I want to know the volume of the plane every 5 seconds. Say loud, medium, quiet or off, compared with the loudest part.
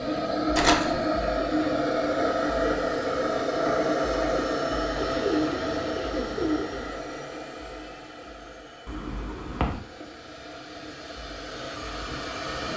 loud, medium, medium.